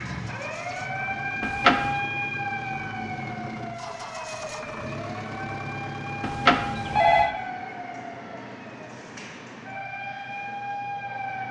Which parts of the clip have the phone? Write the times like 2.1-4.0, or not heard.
1.4-1.9, 6.2-7.3.